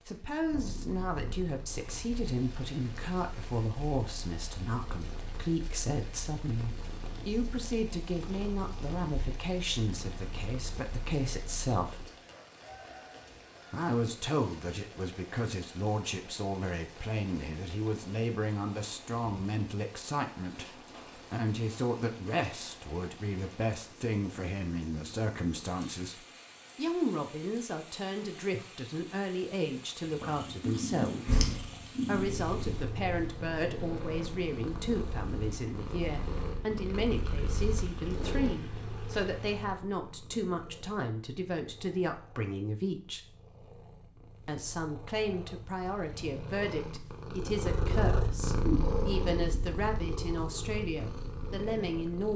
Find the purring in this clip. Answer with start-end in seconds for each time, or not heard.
0.2-12.1, 30.1-52.3.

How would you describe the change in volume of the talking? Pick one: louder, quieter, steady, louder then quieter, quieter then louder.
steady.